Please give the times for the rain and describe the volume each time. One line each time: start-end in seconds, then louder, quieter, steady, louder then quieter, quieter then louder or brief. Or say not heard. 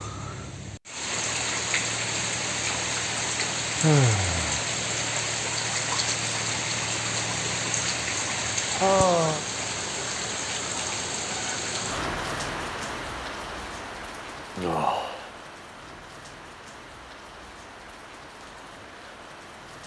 0.0-19.8 quieter.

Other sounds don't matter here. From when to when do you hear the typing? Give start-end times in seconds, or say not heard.
not heard.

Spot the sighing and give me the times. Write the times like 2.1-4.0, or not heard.
3.8-4.7, 8.8-9.4, 14.6-15.2.